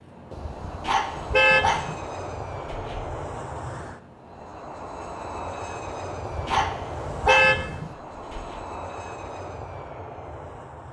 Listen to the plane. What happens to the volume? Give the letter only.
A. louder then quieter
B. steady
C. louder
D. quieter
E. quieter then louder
B.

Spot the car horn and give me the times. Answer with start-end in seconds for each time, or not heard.
0.3-2.0, 6.2-8.0.